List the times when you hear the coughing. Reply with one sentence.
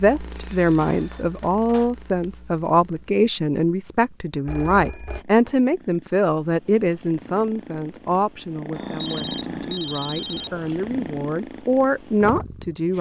The coughing can't be heard in this clip.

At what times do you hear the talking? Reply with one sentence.
You can hear the talking from 0.0 to 12.9 s.